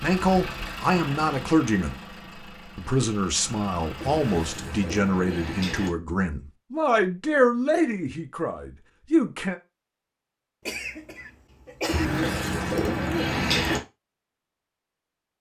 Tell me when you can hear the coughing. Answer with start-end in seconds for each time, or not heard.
10.7-12.1.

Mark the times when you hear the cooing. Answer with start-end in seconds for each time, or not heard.
4.0-5.9, 11.8-13.8.